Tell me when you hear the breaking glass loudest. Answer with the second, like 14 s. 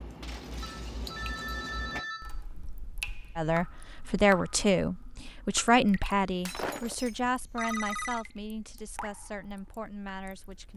7 s.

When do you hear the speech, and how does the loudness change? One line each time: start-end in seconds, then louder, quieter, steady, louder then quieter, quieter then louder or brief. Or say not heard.
3.4-10.7 quieter.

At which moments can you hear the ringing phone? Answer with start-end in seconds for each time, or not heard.
0.6-2.4, 7.2-8.2.